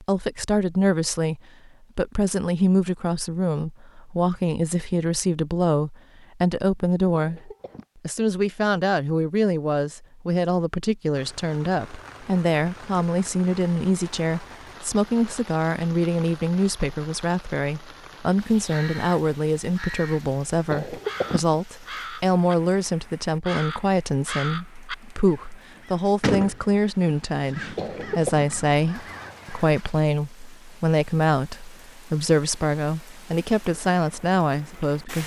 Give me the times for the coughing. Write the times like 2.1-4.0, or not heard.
7.1-7.8, 20.7-21.6, 27.8-28.4.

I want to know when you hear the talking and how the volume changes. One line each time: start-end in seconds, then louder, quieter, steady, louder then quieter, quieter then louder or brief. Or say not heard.
0.0-35.2 steady.